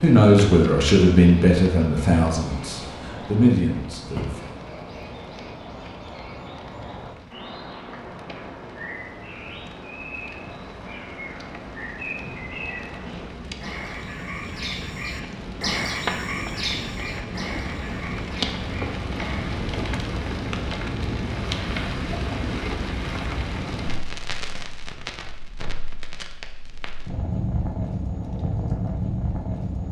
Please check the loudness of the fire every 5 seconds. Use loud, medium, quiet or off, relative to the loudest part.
medium, quiet, medium, loud, loud, loud.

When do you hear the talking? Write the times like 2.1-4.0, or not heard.
0.0-4.4.